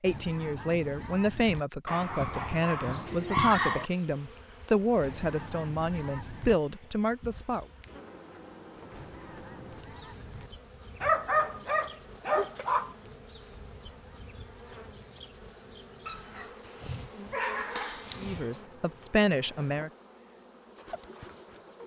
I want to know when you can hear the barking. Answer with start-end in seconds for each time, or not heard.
1.9-3.9, 11.0-12.9, 16.1-18.4.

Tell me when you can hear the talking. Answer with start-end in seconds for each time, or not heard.
0.0-7.7, 18.1-19.9.